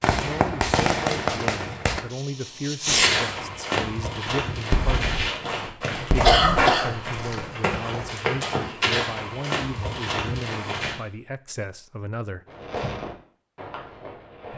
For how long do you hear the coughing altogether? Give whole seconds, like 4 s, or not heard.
2 s.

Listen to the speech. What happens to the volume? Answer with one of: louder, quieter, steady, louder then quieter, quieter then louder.
steady.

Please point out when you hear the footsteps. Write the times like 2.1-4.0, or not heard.
2.9-10.9.